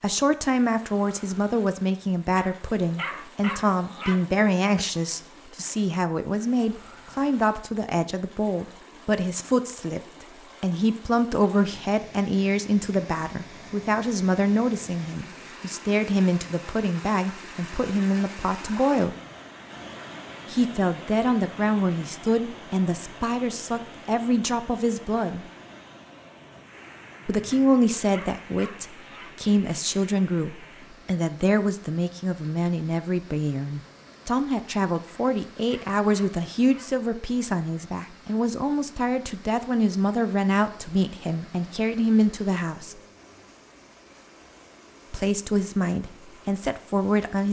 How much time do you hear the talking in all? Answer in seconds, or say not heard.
42 s.